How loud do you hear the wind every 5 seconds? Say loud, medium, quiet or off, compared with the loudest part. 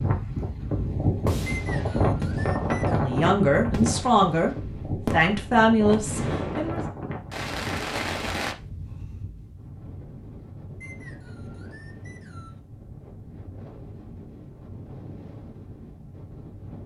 loud, medium, quiet, quiet.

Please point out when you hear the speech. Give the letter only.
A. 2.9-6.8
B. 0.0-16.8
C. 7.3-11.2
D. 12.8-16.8
A.